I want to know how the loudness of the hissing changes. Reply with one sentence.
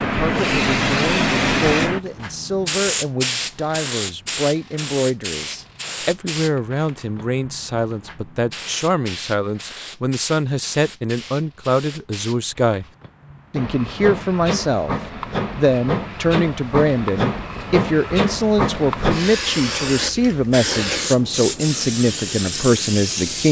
The loudness of the hissing goes down, then up.